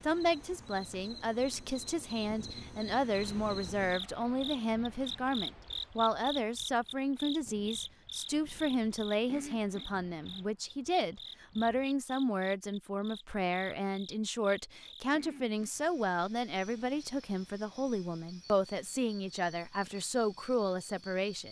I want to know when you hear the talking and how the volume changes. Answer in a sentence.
The talking can be heard from 0.0 to 21.4 s, at a steady volume.